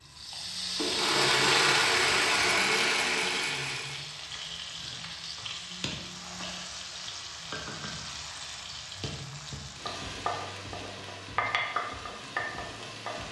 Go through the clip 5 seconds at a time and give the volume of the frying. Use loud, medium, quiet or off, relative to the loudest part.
loud, medium, loud.